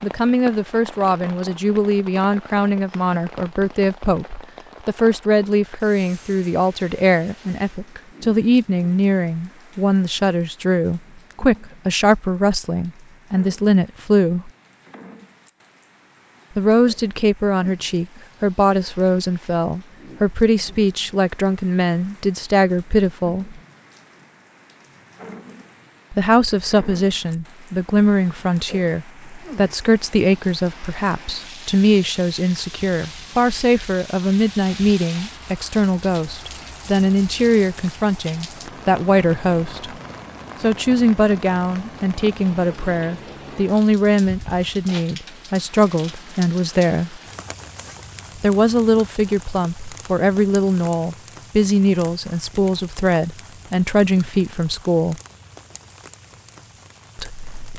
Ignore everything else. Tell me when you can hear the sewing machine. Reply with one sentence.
You can't hear the sewing machine here.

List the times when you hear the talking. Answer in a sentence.
You can hear the talking from 0.0 to 14.5 s, from 16.6 to 23.6 s, from 26.1 to 39.9 s, from 40.6 to 47.2 s, from 48.4 to 55.2 s and from 57.1 to 57.7 s.